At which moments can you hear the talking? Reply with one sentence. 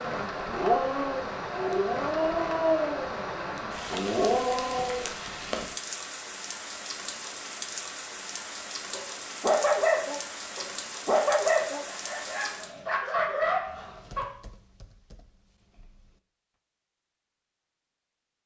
You can't hear the talking here.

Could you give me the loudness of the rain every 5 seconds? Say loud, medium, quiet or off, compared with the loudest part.
loud, loud, loud, off.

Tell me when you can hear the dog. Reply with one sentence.
The dog can be heard from 0.1 to 5.1 s and from 8.9 to 14.2 s.